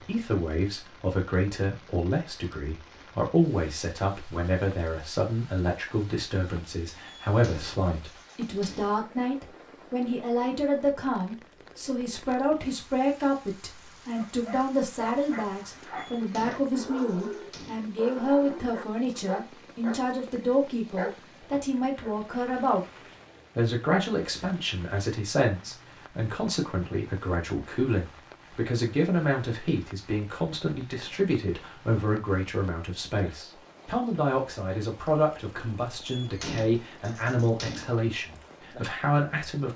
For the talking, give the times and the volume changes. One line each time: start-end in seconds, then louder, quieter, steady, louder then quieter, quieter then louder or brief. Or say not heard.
0.0-22.8 steady
23.6-39.7 steady.